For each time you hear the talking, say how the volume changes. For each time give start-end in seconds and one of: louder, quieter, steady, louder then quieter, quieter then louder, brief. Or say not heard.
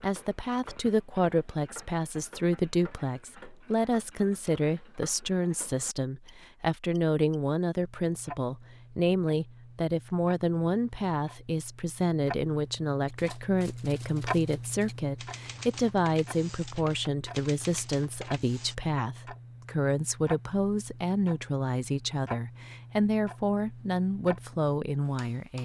0.0-25.6 steady.